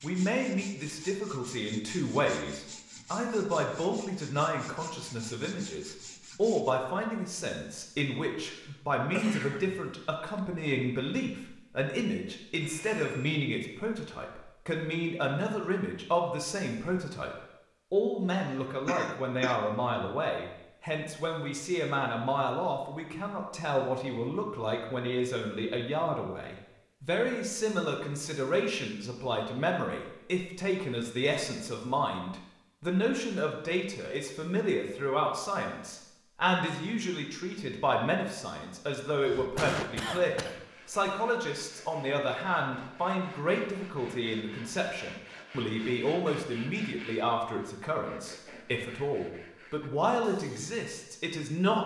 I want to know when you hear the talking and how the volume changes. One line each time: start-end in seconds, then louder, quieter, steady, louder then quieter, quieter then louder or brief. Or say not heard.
0.0-51.8 steady.